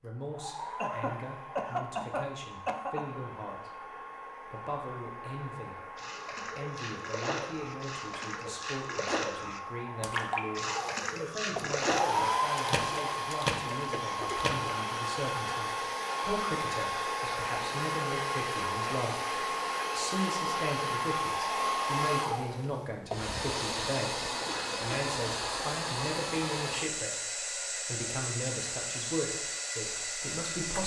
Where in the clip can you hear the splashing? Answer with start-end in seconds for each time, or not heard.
6.0-14.8.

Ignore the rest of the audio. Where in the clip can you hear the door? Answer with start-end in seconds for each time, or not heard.
not heard.